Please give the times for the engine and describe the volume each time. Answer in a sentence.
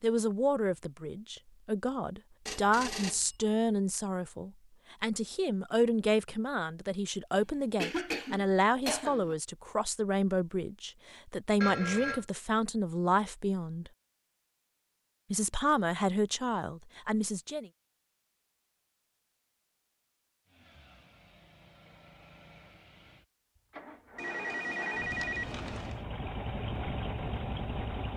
The engine can be heard from 20.4 to 28.1 s, getting louder.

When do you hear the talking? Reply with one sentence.
The talking can be heard from 0.0 to 13.9 s and from 15.3 to 17.7 s.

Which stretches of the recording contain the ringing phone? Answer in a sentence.
The ringing phone can be heard from 2.5 to 3.4 s, from 11.6 to 12.2 s and from 24.1 to 26.0 s.